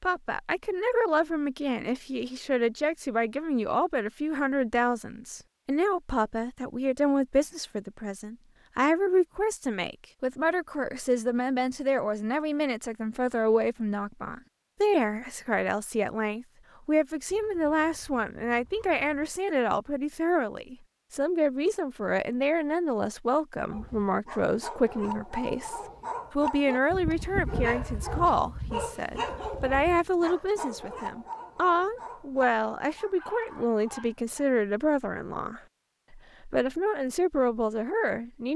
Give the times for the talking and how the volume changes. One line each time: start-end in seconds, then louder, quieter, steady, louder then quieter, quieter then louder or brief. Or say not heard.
0.0-38.5 steady.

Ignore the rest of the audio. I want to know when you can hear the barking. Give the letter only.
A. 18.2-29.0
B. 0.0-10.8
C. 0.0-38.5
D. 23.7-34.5
D.